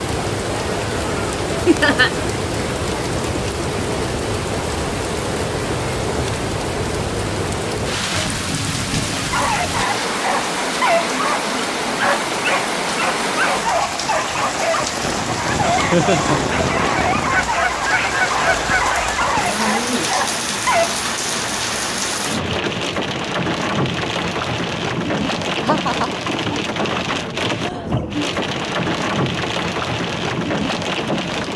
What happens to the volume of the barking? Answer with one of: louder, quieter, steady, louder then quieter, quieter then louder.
steady.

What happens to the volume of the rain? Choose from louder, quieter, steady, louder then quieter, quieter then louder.
steady.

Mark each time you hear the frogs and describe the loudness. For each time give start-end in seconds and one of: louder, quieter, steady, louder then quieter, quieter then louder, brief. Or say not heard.
not heard.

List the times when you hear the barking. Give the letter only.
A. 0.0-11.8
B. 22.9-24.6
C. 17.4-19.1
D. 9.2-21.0
D.